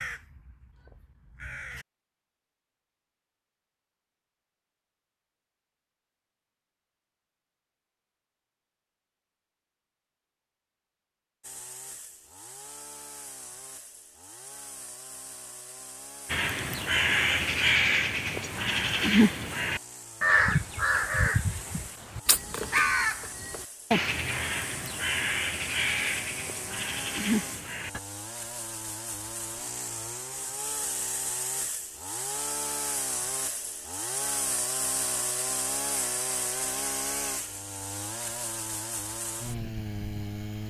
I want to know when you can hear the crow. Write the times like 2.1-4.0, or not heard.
0.0-1.9, 16.3-28.0.